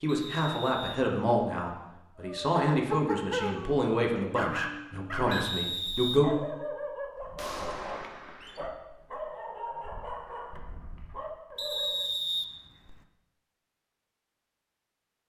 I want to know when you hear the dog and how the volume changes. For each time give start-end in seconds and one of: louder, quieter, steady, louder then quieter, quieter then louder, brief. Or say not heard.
2.1-12.1 quieter.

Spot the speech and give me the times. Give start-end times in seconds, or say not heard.
0.0-6.3.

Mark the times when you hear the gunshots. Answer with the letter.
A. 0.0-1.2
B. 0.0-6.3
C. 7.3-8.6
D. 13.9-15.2
C.